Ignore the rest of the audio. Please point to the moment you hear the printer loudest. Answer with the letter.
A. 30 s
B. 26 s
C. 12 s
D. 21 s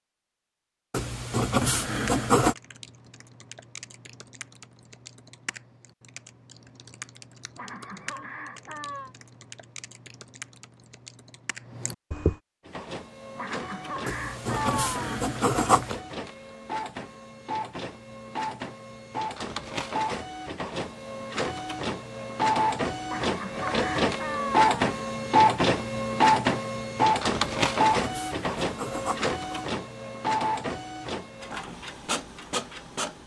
B.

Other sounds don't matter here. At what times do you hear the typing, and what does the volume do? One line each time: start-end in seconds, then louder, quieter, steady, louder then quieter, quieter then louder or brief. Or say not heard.
1.9-12.3 steady.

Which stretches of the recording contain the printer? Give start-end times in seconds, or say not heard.
12.7-33.2.